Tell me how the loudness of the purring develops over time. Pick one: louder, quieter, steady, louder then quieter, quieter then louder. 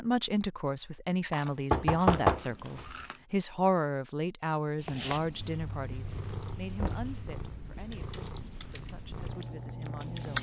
louder.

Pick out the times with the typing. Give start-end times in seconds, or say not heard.
7.9-10.3.